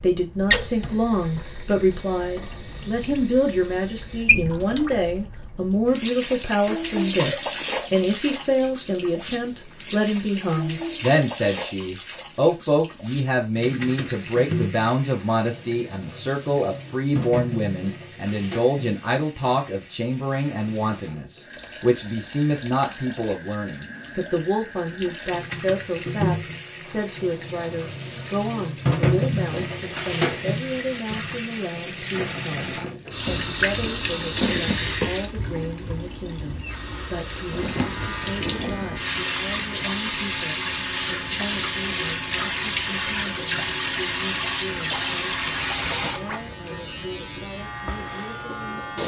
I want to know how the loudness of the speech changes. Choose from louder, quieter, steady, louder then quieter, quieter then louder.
quieter.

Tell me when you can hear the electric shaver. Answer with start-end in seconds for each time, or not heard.
37.5-49.0.